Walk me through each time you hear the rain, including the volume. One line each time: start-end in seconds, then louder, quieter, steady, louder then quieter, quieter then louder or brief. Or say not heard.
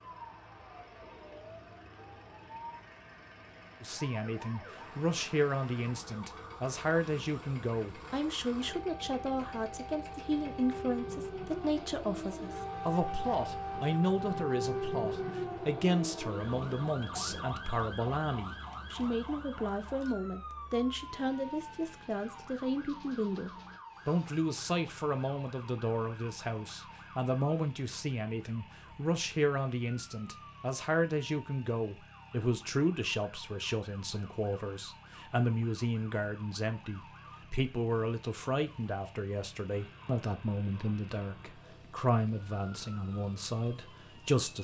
not heard.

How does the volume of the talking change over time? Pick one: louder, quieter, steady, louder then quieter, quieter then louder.
steady.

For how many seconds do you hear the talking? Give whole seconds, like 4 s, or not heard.
41 s.